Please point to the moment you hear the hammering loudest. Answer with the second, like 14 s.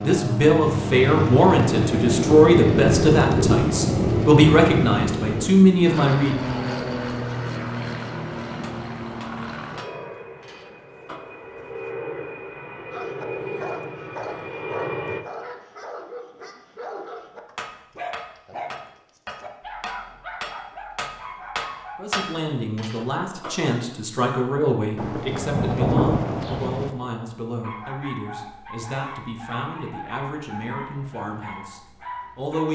22 s.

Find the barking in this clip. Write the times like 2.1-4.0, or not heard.
12.9-22.1, 27.6-32.7.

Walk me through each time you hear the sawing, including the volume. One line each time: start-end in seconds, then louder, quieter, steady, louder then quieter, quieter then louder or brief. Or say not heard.
not heard.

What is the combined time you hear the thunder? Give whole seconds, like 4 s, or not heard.
7 s.